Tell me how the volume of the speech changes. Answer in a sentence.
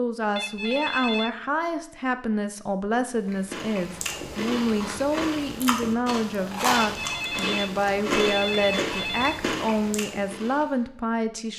The loudness of the speech stays about the same.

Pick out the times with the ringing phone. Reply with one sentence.
You can hear the ringing phone from 0.3 to 1.4 s and from 6.8 to 9.4 s.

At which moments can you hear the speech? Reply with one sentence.
You can hear the speech from 0.0 to 11.5 s.